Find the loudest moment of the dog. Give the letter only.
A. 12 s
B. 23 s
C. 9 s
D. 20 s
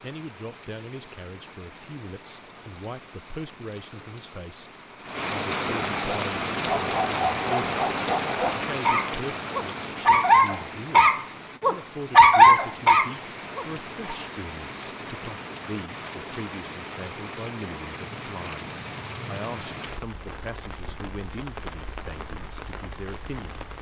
A.